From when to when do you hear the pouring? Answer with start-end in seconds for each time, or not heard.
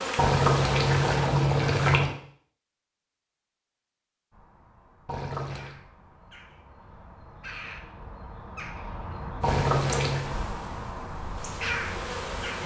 0.1-2.1, 5.0-5.8, 9.4-10.2.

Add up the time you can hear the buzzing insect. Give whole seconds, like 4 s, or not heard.
5 s.